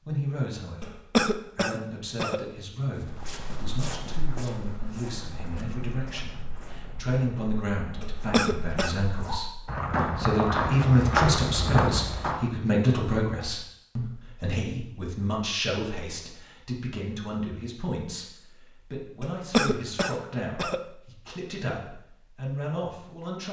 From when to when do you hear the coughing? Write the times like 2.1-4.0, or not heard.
0.8-2.5, 8.0-9.0, 19.2-20.9.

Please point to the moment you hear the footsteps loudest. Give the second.
11 s.